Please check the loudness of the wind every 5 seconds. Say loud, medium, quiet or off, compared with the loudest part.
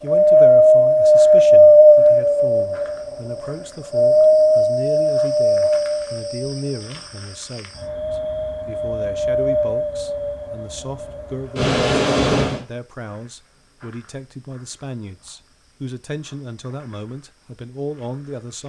loud, medium, medium, off.